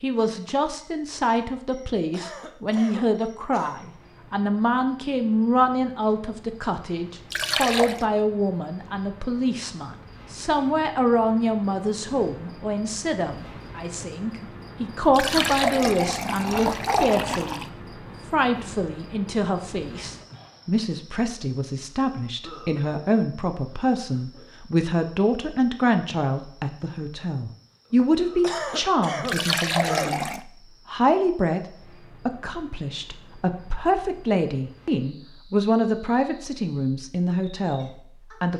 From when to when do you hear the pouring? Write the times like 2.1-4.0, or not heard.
7.3-8.1, 15.1-17.7, 29.2-30.4.